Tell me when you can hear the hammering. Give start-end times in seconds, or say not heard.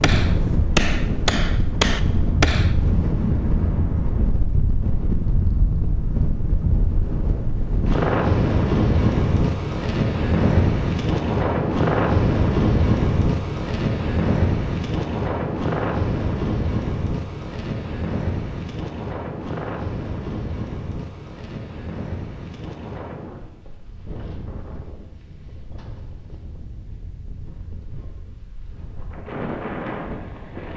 0.0-2.8.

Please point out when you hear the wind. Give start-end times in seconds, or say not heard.
0.0-30.7.